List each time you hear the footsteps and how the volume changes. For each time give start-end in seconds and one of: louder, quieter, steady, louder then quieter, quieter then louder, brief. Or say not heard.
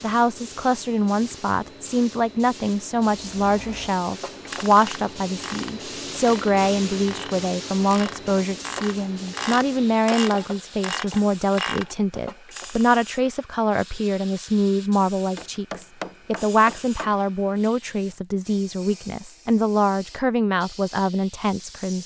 not heard.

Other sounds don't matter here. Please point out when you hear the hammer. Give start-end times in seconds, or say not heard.
15.3-17.2.